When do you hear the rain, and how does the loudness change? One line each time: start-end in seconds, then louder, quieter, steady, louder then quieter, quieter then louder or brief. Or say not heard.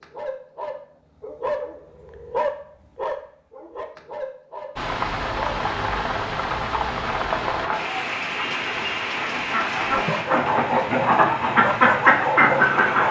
4.8-13.0 quieter.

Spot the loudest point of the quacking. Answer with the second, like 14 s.
12 s.